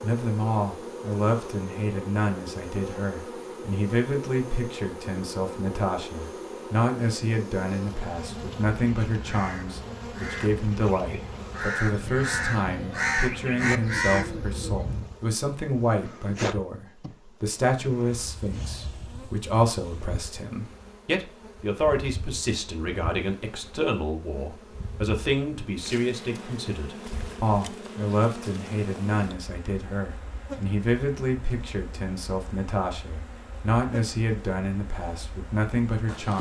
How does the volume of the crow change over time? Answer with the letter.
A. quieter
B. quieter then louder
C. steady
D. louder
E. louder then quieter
D.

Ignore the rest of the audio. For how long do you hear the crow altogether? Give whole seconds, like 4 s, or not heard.
7 s.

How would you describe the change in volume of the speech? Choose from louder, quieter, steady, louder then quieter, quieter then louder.
steady.